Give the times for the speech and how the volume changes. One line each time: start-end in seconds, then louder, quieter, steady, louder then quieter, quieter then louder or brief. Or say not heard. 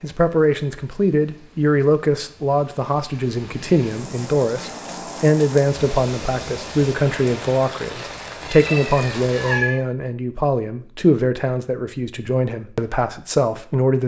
0.0-14.0 steady.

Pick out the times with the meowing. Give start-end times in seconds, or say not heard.
8.4-9.8.